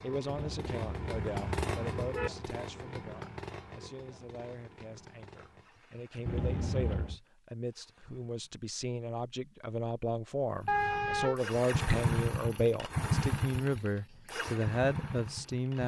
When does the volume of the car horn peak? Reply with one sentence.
The volume of the car horn peaks at 11 seconds.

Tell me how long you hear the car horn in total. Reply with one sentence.
You can hear the car horn for 4 seconds altogether.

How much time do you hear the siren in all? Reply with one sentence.
The siren can't be heard in this clip.